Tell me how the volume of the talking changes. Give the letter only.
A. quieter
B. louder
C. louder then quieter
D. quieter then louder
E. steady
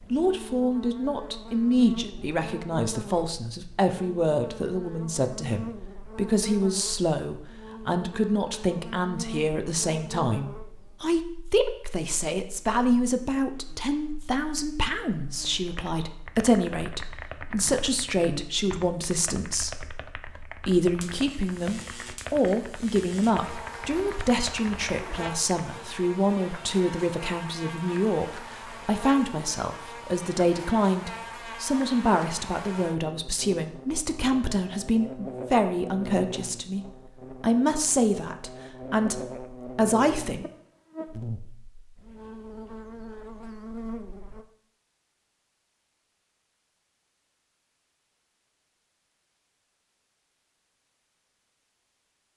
E.